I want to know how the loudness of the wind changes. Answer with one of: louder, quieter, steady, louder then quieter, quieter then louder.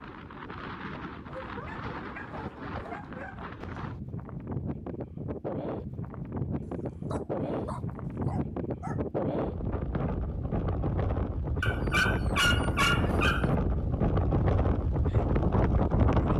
louder.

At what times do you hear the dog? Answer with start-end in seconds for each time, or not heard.
1.2-3.5, 6.6-9.0, 11.6-13.5.